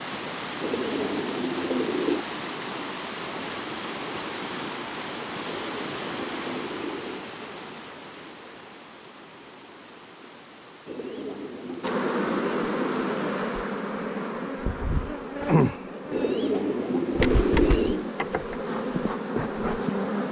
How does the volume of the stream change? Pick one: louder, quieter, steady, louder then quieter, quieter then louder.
quieter.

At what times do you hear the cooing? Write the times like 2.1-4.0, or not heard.
0.6-2.2, 5.5-7.3, 10.8-13.2, 16.1-18.1.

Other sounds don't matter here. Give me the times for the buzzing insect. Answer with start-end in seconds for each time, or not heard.
11.8-20.2.